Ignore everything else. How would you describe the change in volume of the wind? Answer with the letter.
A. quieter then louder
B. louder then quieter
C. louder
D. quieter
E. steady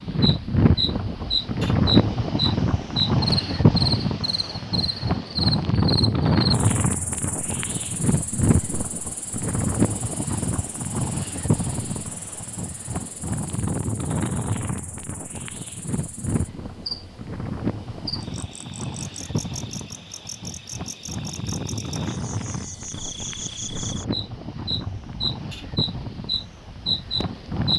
D.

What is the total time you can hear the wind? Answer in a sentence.
The wind can be heard for 28 seconds in total.